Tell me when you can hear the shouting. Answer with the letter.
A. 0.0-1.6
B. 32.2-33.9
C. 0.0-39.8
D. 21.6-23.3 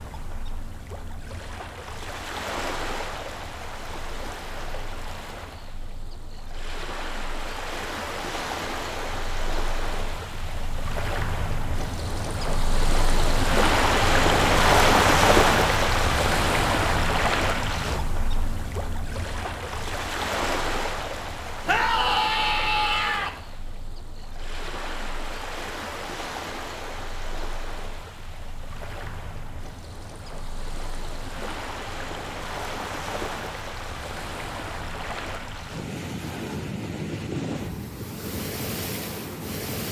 D.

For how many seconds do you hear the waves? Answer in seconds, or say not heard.
40 s.